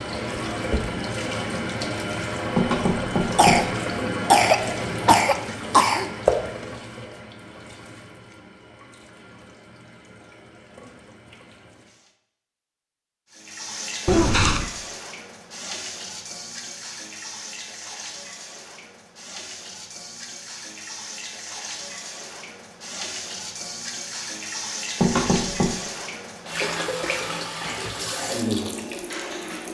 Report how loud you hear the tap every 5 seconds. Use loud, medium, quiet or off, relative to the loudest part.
loud, loud, medium, medium, medium, loud.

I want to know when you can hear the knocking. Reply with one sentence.
You can hear the knocking from 2.5 to 3.8 s and from 25.0 to 25.8 s.